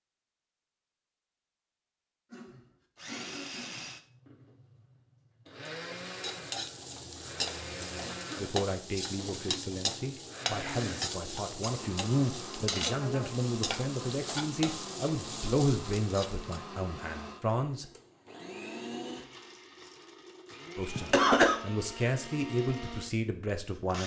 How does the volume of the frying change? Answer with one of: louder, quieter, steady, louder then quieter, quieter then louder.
steady.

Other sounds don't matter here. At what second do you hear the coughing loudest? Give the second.
21 s.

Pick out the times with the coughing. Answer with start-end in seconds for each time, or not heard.
2.3-4.0, 8.2-8.6, 20.9-21.6.